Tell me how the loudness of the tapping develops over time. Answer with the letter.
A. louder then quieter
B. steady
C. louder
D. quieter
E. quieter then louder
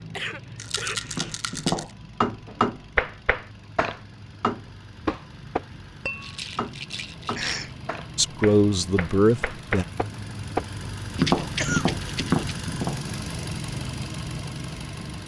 E.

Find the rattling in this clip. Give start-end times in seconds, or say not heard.
0.6-1.9, 6.2-7.7, 11.2-12.5.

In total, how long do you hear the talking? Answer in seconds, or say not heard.
2 s.